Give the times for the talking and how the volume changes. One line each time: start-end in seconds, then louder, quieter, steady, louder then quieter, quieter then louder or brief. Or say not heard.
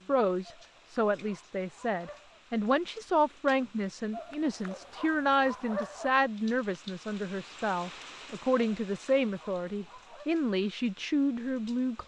0.1-12.0 steady.